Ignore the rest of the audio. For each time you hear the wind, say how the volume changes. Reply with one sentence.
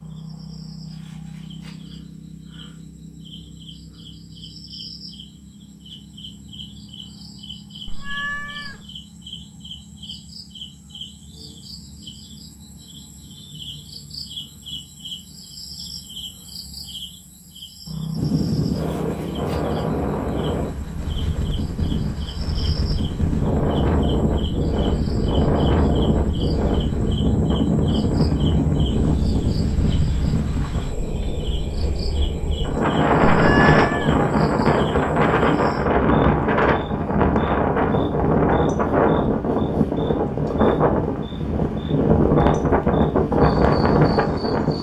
You can hear the wind from 18.1 to 44.7 s, getting louder.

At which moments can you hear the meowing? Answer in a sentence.
You can hear the meowing from 7.8 to 8.8 s and from 33.4 to 34.1 s.